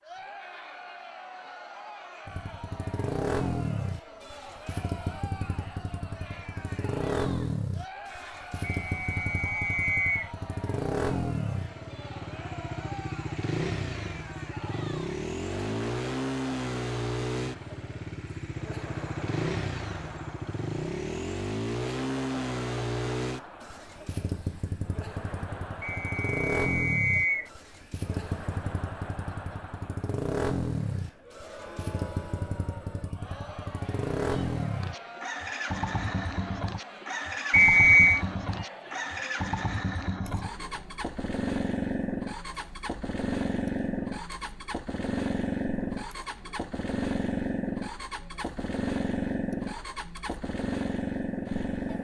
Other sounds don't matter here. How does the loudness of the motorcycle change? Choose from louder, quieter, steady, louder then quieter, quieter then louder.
steady.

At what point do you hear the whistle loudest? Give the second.
38 s.